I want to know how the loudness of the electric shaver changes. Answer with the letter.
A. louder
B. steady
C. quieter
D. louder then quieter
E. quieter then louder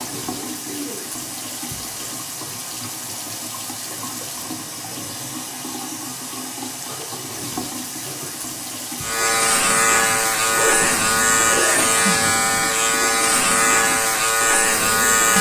B.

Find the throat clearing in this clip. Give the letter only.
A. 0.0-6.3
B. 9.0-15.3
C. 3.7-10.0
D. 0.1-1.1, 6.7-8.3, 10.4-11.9
D.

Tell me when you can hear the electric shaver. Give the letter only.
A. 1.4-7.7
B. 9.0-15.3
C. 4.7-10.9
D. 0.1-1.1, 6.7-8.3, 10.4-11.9
B.